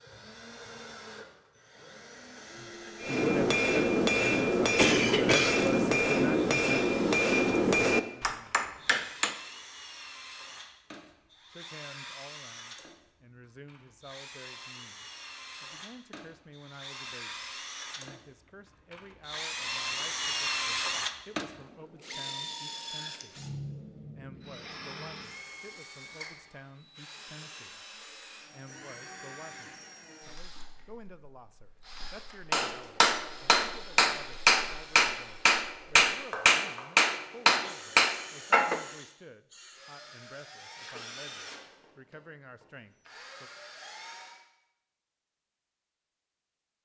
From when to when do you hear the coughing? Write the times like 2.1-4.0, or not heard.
4.8-5.7.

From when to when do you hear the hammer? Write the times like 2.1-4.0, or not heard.
3.0-9.3, 32.5-38.8.